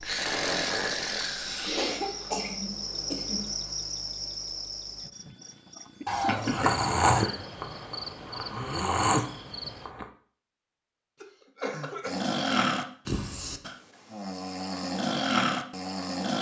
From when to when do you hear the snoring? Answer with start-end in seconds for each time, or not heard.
0.0-2.3, 6.2-10.1, 12.1-16.3.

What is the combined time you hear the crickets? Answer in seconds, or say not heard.
10 s.